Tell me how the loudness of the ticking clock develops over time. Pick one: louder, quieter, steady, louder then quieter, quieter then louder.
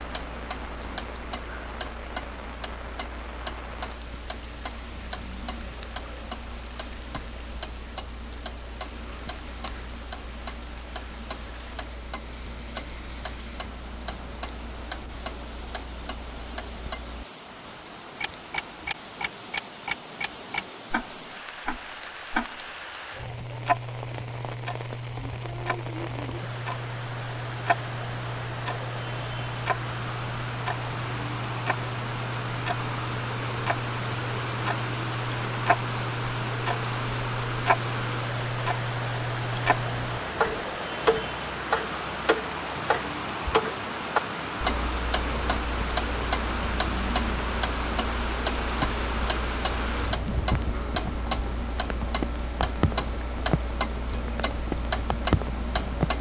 louder.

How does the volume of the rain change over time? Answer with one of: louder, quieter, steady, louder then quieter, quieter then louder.
louder.